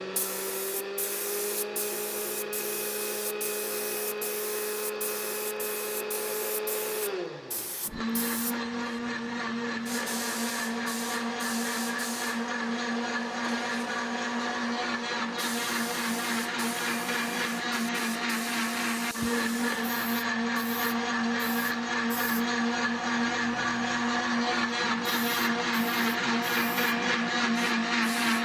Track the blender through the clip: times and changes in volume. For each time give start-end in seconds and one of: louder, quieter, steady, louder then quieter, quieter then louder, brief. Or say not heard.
0.0-28.4 louder.